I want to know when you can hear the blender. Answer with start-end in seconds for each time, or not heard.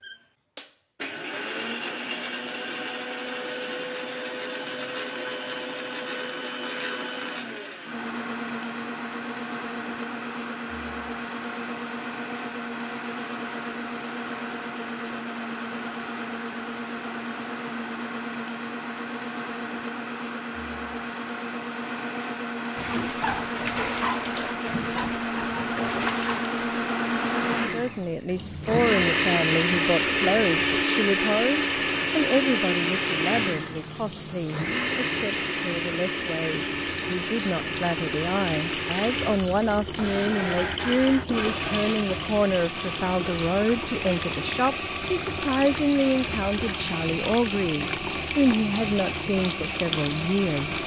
0.0-50.8.